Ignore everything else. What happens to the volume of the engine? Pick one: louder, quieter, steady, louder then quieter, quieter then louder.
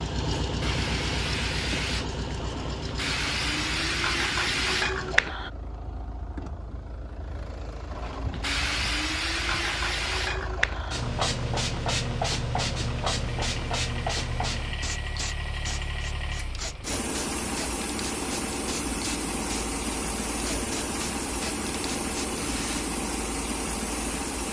quieter then louder.